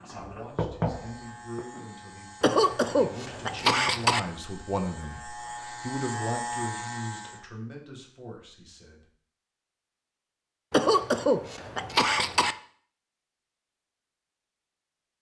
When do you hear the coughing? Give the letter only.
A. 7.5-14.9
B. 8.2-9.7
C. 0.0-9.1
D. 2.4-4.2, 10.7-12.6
D.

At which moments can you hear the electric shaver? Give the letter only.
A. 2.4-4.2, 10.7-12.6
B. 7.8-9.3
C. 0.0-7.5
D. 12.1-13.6
C.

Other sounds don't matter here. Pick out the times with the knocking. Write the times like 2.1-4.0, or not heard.
0.1-1.6.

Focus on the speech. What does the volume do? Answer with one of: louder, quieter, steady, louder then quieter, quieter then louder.
louder then quieter.